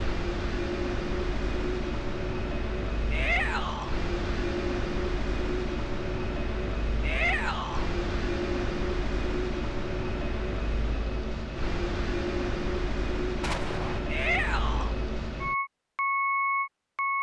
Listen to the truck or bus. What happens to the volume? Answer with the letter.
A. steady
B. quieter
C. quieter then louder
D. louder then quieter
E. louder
A.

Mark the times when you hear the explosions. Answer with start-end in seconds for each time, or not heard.
13.4-14.0.